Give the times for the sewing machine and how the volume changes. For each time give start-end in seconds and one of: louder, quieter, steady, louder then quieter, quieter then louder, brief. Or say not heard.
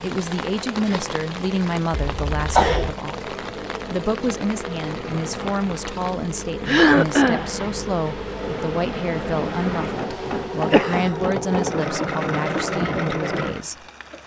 0.0-14.2 louder.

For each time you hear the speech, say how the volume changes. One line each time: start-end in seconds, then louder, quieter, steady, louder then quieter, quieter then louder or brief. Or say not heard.
0.0-14.2 steady.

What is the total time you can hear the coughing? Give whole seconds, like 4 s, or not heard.
3 s.